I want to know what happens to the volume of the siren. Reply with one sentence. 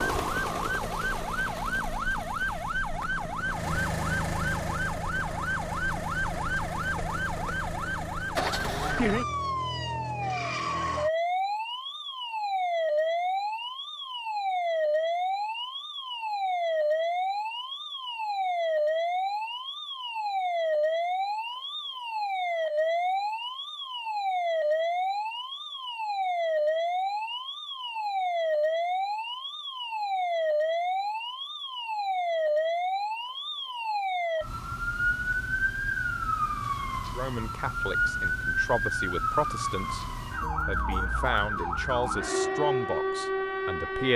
The volume of the siren stays about the same.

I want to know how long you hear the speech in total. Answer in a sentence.
You can hear the speech for 7 seconds altogether.